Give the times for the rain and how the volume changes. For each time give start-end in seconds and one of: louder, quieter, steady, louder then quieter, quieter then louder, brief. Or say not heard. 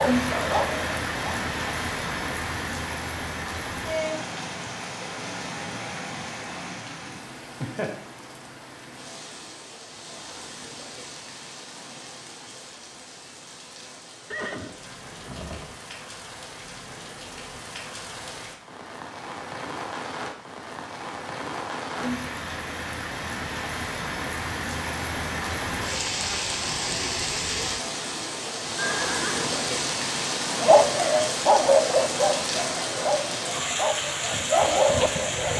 0.0-35.5 quieter then louder.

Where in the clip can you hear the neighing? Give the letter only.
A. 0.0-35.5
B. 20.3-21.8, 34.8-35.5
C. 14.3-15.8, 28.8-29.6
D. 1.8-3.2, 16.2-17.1
C.